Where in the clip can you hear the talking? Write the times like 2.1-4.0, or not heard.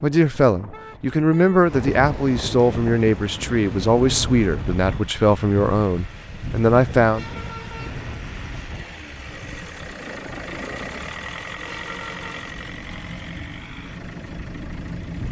0.0-7.2.